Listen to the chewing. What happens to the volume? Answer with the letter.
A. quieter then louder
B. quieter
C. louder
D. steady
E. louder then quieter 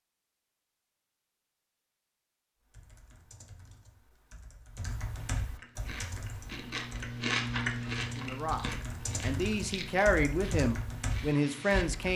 E.